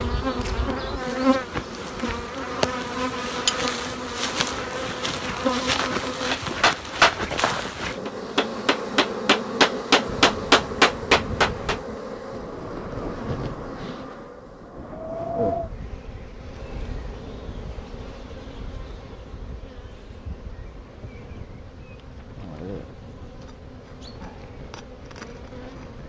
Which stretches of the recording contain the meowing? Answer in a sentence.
You can't hear the meowing here.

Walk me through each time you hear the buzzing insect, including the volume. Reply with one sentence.
You can hear the buzzing insect from 0.0 to 26.0 s, getting quieter.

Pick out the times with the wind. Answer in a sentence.
The wind can be heard from 10.1 to 26.0 s.